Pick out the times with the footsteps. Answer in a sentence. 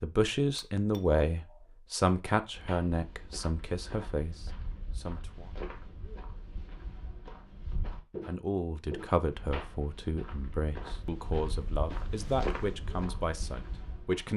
You can hear the footsteps from 2.5 to 14.3 s.